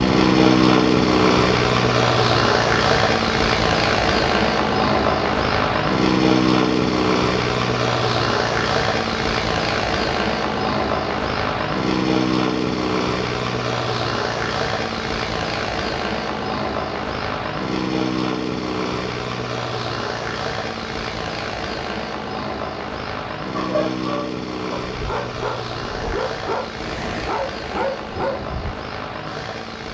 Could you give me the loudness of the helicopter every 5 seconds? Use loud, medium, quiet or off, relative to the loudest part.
loud, loud, medium, medium, medium, quiet.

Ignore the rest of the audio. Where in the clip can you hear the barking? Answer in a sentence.
The barking can be heard from 23.6 to 28.8 s.